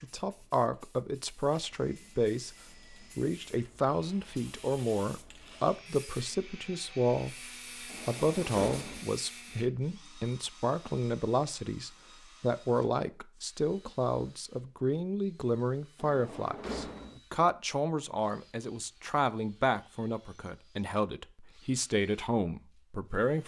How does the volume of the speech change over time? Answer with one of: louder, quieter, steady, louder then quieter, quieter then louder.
steady.